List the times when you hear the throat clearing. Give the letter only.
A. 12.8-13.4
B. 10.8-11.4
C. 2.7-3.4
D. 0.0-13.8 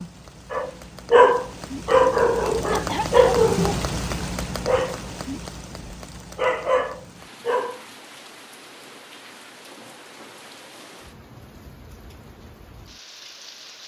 C.